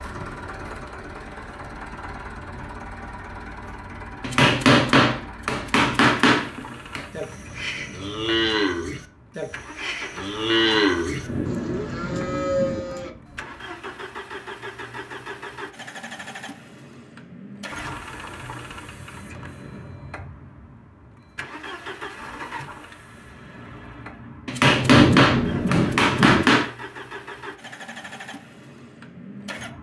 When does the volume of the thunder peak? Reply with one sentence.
The loudest moment of the thunder is at 25 seconds.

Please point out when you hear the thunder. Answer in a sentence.
The thunder can be heard from 11.2 to 12.8 s and from 24.8 to 26.4 s.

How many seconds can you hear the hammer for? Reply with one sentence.
You can hear the hammer for 5 seconds altogether.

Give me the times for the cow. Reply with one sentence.
The cow can be heard from 7.1 to 13.6 s.